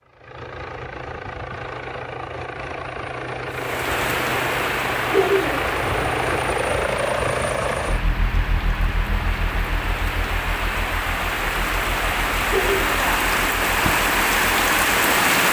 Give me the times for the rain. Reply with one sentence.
The rain can be heard from 3.5 to 15.4 s.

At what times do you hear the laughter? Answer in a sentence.
The laughter can be heard from 5.1 to 5.7 s and from 12.4 to 13.0 s.